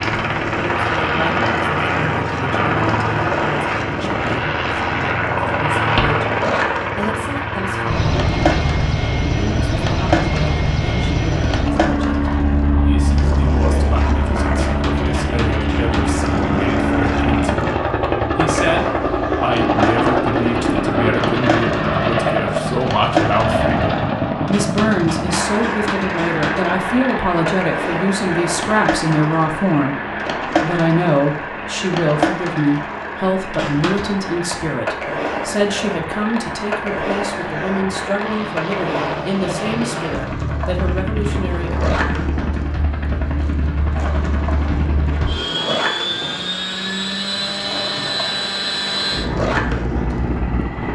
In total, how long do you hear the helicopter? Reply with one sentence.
The helicopter can be heard for 51 seconds in total.